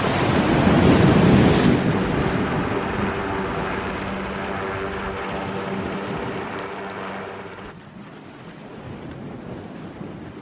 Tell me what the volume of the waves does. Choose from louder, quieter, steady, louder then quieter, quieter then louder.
quieter.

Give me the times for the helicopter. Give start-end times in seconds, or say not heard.
1.8-7.8.